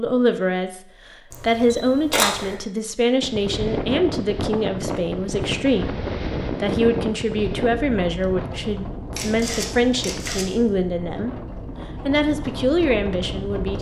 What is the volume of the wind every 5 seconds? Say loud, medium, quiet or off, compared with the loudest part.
loud, loud, medium.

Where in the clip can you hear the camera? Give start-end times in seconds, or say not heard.
1.3-2.5, 9.2-10.4.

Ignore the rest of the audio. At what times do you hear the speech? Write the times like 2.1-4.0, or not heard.
0.0-11.4, 12.1-13.7.